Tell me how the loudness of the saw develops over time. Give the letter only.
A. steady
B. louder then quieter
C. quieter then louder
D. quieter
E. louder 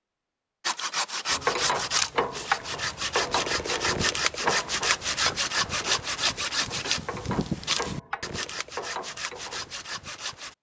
D.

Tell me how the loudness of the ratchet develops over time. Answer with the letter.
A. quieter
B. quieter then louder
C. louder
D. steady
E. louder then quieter
A.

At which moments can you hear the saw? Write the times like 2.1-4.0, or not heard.
0.6-10.5.